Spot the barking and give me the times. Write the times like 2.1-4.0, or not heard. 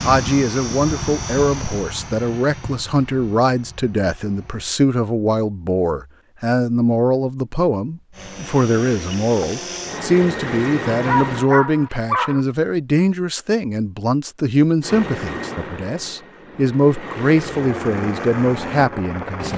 10.9-12.4.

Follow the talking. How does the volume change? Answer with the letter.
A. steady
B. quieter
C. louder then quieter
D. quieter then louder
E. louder
A.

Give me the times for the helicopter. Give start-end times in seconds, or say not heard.
0.0-4.7, 8.1-11.4, 14.8-19.5.